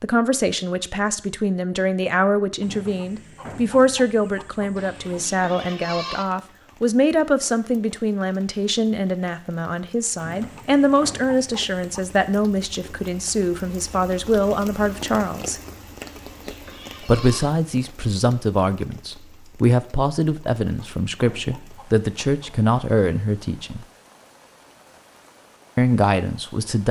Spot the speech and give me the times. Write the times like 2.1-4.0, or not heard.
0.0-15.6, 17.0-23.9, 25.8-26.8.